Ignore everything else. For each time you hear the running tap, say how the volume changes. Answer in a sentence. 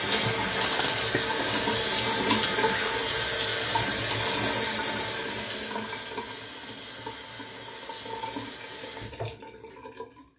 The running tap can be heard from 0.0 to 10.3 s, getting quieter.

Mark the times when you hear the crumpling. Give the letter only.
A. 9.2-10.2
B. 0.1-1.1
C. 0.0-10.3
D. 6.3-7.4
B.